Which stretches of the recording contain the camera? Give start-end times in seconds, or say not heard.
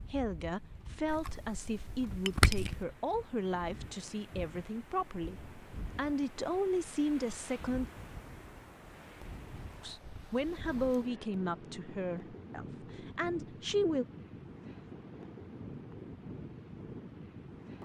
1.1-2.9.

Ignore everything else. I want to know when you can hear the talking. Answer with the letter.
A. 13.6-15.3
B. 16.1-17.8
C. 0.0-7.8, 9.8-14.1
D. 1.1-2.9
C.